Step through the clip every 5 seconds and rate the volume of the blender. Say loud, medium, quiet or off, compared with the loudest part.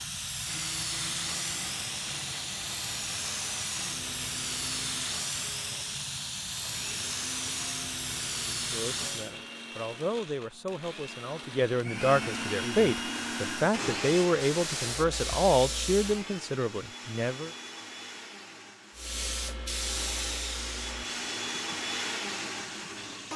medium, medium, loud, medium, loud.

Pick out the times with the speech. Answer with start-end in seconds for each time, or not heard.
8.6-17.5.